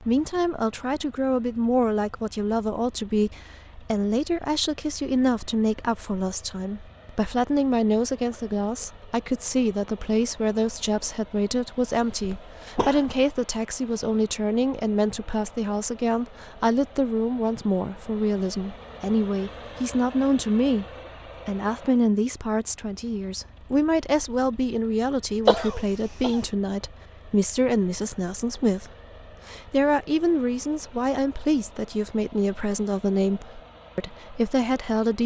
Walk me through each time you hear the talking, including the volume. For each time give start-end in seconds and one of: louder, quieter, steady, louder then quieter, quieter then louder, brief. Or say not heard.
0.0-20.9 steady
21.4-35.2 steady.